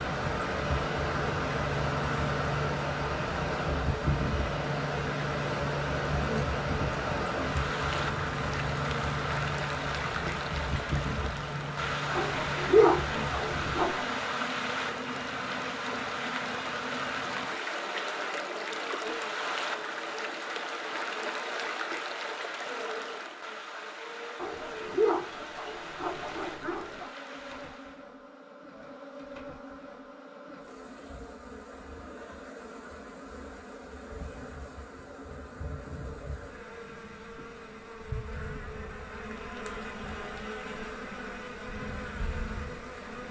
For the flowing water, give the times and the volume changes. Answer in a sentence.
The flowing water can be heard from 0.0 to 28.1 s, getting quieter.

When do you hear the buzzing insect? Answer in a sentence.
The buzzing insect can be heard from 0.0 to 43.2 s.